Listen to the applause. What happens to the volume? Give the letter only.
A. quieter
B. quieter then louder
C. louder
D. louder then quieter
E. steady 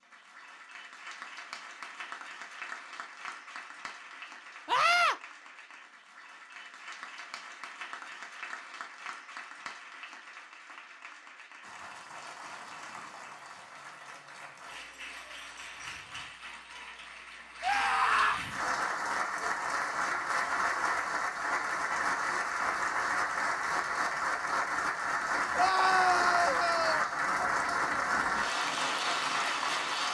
C.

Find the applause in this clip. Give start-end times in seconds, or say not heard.
0.0-30.1.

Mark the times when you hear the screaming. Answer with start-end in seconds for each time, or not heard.
4.7-5.2, 17.6-18.4, 25.6-27.1.